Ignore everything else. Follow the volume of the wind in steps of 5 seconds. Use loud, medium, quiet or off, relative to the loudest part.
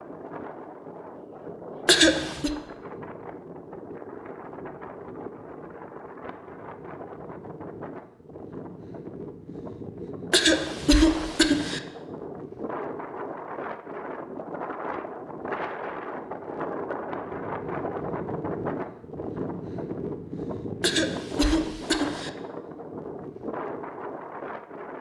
medium, medium, loud, loud, loud.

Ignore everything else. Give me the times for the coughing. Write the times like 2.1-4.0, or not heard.
1.9-2.5, 10.3-11.8, 20.8-22.3.